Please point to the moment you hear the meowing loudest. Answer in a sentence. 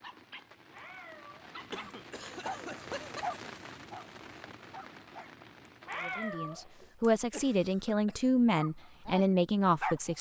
The loudest moment of the meowing is at 6 seconds.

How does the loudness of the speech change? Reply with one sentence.
The loudness of the speech goes up.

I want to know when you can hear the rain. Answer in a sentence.
The rain can be heard from 0.0 to 7.1 s.